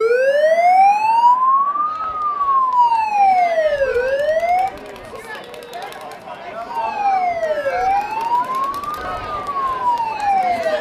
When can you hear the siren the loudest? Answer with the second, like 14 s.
1 s.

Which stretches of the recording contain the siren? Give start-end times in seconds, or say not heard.
0.0-4.7, 6.7-10.7.